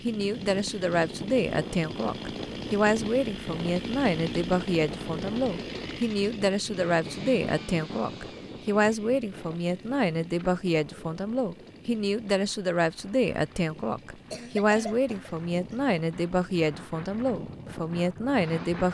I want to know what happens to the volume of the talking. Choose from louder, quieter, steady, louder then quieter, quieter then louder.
steady.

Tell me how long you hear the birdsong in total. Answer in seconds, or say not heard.
not heard.